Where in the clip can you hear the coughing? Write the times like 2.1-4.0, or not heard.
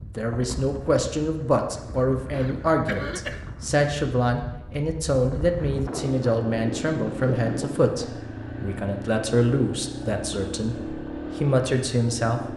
2.3-3.5.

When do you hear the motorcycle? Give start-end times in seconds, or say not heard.
6.0-12.5.